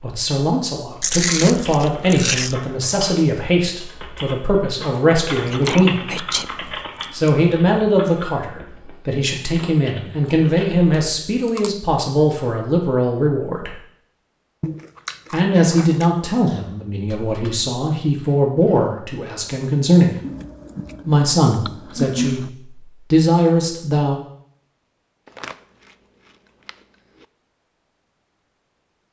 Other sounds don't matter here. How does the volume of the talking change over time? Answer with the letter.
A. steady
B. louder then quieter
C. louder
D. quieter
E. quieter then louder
A.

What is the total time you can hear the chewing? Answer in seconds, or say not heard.
11 s.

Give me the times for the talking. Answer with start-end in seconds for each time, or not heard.
0.0-6.2, 7.1-13.8, 15.3-20.1, 21.1-24.1.